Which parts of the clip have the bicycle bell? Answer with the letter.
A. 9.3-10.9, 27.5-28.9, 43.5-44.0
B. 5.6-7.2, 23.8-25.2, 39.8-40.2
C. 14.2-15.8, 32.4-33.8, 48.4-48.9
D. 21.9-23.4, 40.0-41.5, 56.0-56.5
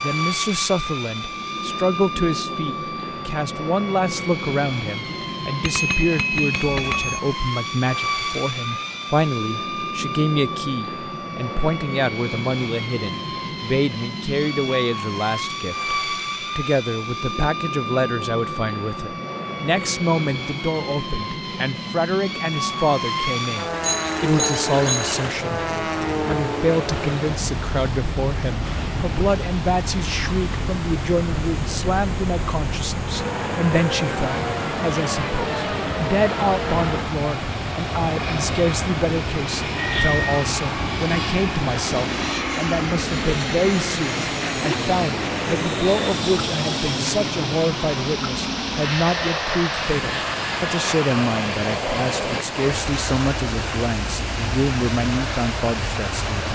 B.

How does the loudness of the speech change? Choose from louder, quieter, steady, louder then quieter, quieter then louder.
steady.